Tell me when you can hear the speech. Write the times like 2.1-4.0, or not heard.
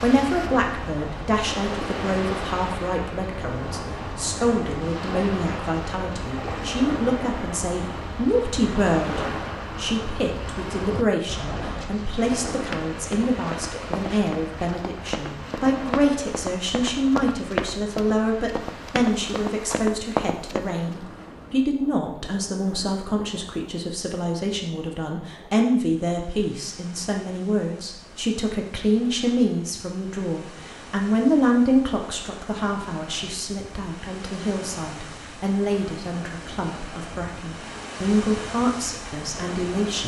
0.0-40.0.